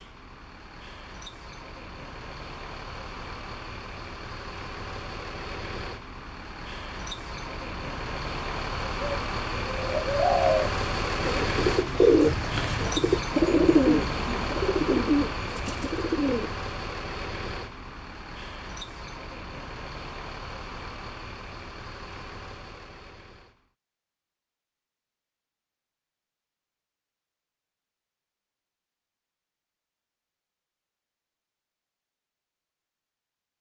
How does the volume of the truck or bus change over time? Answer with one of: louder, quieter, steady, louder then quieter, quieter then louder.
louder then quieter.